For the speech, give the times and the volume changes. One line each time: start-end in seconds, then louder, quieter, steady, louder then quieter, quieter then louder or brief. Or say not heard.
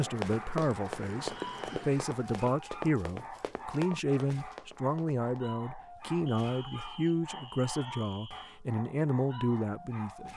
0.0-10.3 steady.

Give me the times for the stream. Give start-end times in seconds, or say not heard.
not heard.